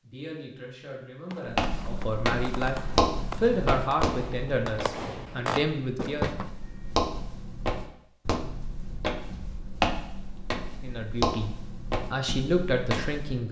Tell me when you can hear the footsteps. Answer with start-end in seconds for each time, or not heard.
1.4-13.4.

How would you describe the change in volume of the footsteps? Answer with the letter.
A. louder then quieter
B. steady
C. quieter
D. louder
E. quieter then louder
E.